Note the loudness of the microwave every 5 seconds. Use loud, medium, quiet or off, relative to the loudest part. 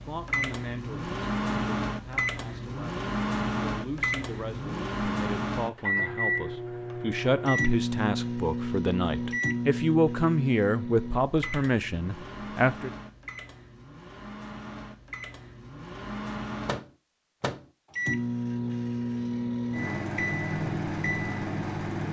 loud, loud, medium, loud, loud.